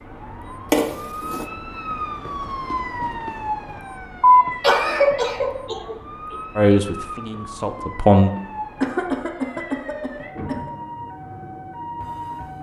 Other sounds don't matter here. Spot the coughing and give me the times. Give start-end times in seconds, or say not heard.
0.7-1.4, 4.2-6.0, 8.8-10.7.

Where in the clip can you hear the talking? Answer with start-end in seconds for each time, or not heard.
6.5-8.3.